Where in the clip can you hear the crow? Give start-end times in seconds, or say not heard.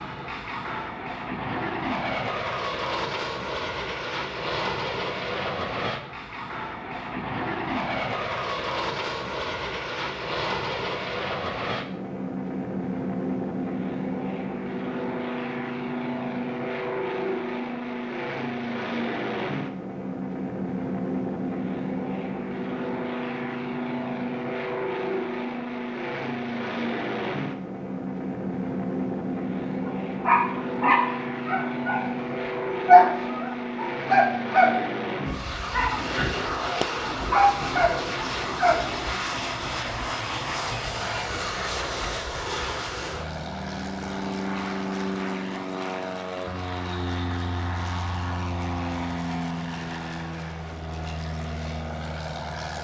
not heard.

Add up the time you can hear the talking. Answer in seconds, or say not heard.
not heard.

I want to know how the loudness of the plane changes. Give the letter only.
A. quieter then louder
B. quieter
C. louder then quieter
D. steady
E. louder
D.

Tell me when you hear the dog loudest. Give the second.
33 s.